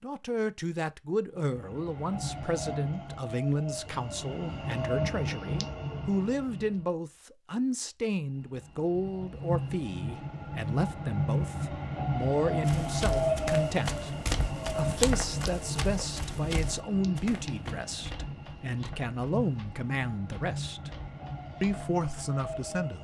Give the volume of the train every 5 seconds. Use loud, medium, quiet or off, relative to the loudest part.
medium, medium, loud, medium, medium.